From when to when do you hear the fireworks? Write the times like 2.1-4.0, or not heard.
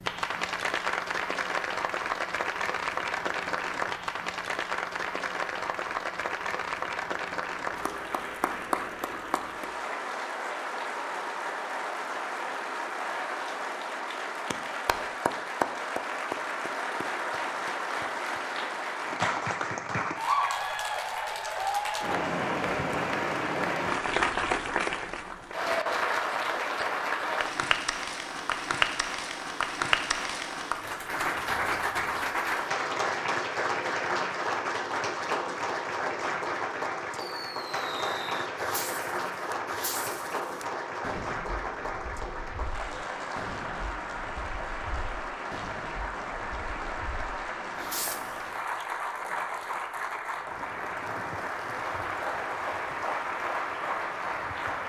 37.1-48.4.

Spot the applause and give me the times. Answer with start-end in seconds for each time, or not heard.
0.0-54.8.